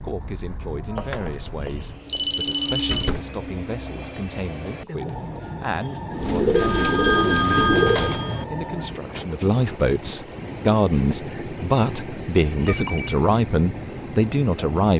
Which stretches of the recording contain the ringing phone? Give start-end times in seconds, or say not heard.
0.9-3.2, 6.5-8.4, 12.4-13.2.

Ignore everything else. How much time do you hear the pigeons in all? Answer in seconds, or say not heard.
2 s.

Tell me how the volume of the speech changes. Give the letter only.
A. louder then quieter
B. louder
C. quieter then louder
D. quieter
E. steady
B.